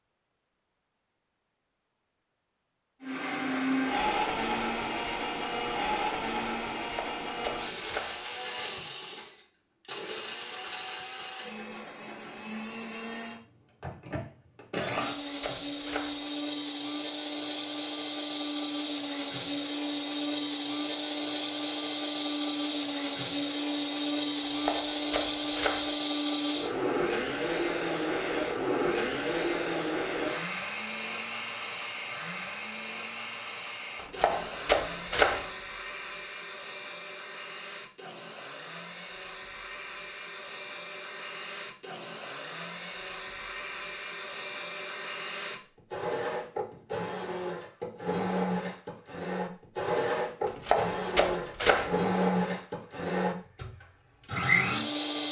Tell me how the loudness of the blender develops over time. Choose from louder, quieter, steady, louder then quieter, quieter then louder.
quieter then louder.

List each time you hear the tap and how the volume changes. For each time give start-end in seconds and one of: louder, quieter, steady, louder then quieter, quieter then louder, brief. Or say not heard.
not heard.